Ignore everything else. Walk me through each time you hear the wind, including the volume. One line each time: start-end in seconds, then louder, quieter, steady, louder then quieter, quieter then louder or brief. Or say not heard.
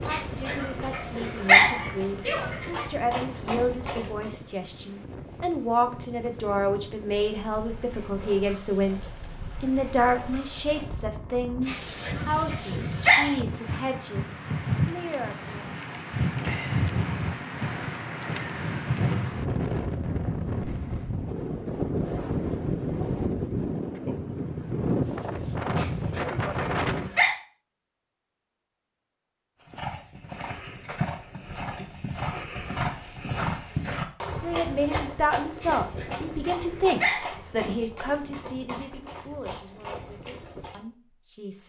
0.0-27.1 louder.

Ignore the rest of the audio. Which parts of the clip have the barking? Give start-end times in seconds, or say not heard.
0.1-2.9, 11.7-13.3, 25.8-27.4, 35.6-37.4.